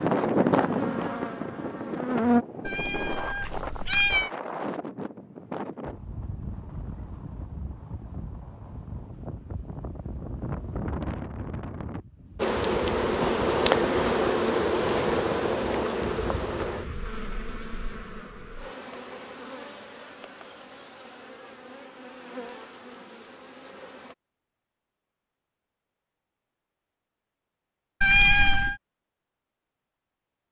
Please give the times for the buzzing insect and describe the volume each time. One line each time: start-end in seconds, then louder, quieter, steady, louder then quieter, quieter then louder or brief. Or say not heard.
0.0-2.5 brief
12.3-24.1 quieter.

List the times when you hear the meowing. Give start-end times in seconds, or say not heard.
2.6-4.3, 28.0-28.8.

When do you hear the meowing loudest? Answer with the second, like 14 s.
28 s.